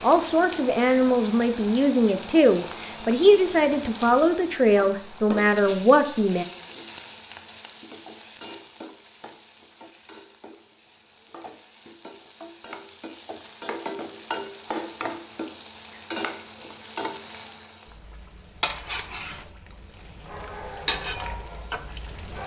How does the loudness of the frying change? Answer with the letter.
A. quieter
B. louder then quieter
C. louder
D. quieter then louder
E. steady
D.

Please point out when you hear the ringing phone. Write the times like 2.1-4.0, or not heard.
not heard.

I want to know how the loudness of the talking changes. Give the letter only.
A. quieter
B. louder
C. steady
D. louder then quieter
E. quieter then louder
C.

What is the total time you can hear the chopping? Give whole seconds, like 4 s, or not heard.
not heard.